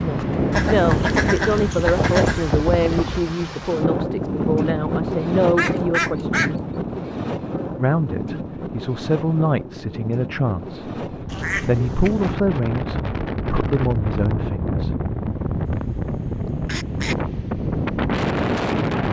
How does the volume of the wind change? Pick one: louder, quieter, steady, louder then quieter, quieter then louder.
quieter then louder.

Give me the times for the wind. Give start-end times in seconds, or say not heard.
0.0-19.0.